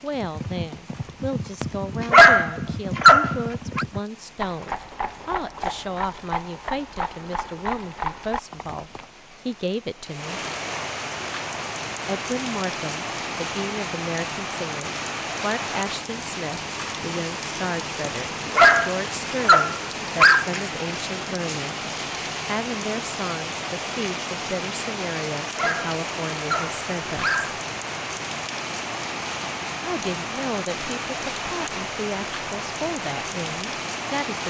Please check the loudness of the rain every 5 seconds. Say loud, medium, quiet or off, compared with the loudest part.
quiet, quiet, loud, loud, loud, loud, loud.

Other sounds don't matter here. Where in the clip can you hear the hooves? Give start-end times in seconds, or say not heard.
0.1-9.1.